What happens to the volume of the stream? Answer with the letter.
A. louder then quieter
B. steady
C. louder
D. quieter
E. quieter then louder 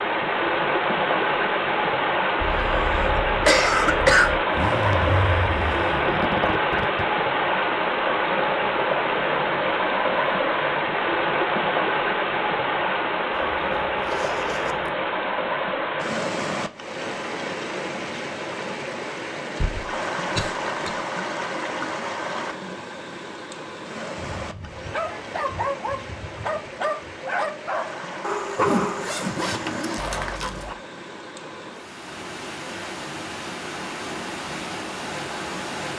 D.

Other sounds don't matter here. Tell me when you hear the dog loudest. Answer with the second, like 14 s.
29 s.